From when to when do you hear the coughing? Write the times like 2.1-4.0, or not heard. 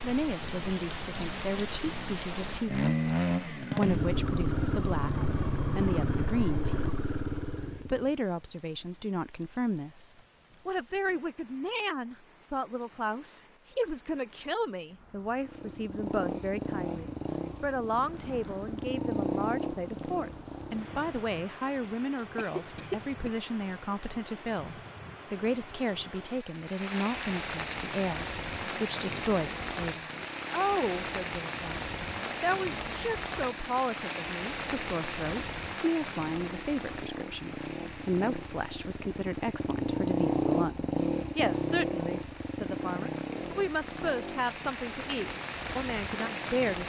22.4-23.3.